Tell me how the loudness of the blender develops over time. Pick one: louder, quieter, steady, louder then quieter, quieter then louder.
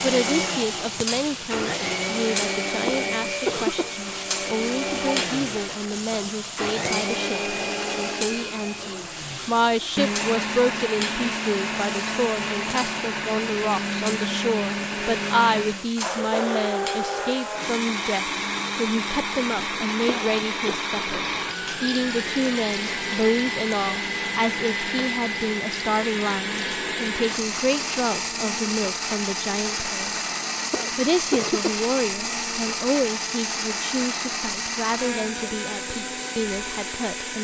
steady.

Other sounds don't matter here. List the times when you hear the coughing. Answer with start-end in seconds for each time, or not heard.
2.9-3.9, 20.1-20.8, 30.7-31.8.